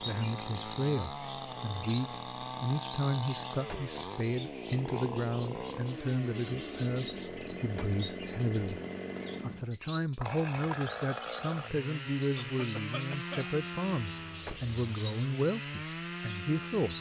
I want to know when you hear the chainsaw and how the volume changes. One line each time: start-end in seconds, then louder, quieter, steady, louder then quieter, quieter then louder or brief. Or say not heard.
0.0-16.9 steady.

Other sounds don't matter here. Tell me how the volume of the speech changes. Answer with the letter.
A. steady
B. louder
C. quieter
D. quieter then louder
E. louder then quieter
A.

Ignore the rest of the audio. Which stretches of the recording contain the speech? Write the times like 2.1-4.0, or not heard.
0.0-8.8, 9.4-16.9.